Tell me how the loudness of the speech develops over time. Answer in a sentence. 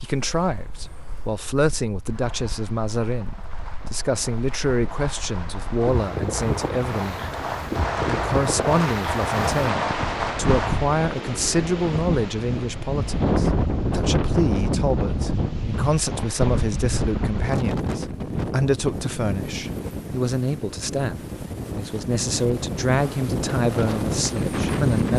The loudness of the speech stays about the same.